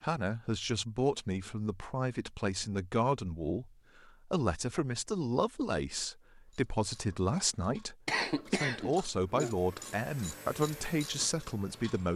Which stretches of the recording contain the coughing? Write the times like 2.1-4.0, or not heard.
8.1-9.6.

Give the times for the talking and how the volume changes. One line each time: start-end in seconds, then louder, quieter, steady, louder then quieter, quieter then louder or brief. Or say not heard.
0.0-12.1 steady.